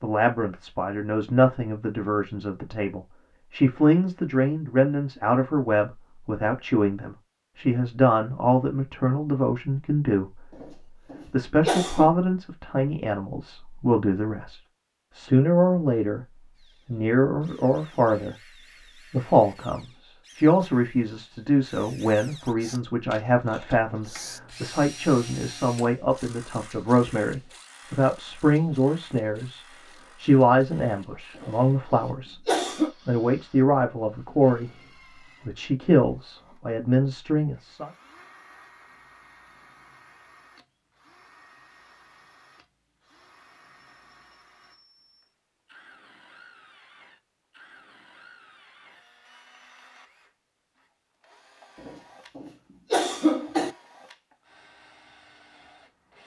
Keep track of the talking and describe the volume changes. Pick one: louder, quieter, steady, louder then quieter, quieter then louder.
steady.